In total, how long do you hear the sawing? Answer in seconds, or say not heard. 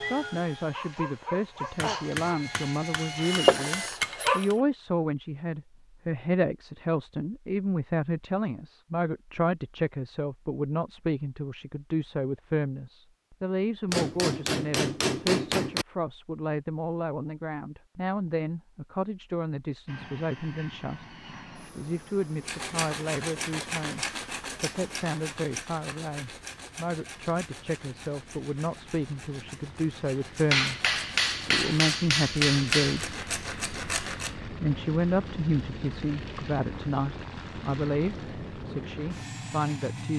12 s.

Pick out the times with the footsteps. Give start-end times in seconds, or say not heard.
not heard.